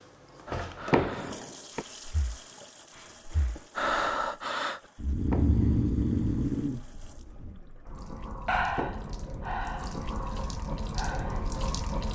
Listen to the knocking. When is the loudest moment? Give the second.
1 s.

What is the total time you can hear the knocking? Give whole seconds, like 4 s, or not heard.
2 s.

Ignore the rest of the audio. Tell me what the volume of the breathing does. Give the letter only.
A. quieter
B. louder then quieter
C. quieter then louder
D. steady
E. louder
B.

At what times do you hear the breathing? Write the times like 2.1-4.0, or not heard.
0.5-11.5.